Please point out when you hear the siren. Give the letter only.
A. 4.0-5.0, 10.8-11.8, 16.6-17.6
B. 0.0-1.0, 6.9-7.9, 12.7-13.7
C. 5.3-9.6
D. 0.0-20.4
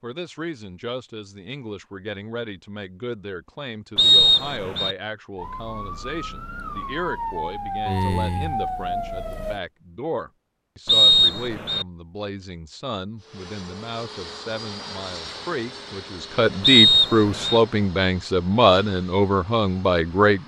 C.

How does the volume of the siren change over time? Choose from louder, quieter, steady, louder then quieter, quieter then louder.
louder.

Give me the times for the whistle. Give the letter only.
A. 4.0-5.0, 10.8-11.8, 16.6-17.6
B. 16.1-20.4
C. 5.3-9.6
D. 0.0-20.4
A.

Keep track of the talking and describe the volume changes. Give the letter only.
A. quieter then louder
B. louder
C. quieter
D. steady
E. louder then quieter
B.